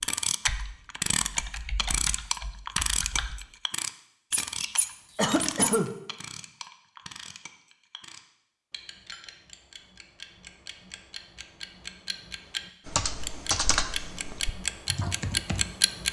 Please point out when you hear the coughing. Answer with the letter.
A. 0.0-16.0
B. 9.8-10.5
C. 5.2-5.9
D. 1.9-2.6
C.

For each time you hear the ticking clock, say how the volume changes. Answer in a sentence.
The ticking clock can be heard from 0.0 to 16.0 s, getting quieter then louder.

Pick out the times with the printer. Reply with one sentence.
You can't hear the printer here.